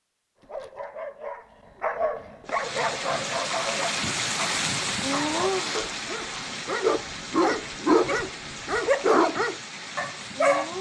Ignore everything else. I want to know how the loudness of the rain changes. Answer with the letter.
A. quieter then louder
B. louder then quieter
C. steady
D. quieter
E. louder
D.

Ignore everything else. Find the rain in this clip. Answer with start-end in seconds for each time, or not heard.
2.5-10.7.